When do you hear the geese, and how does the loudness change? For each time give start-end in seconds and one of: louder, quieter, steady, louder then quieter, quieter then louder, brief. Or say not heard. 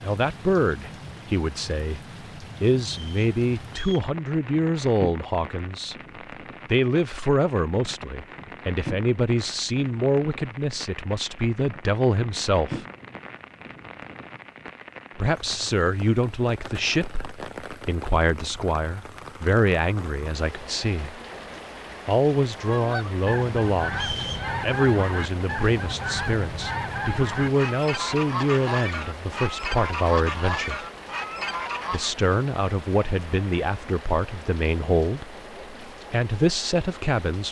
22.6-32.1 steady.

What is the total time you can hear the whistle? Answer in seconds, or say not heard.
2 s.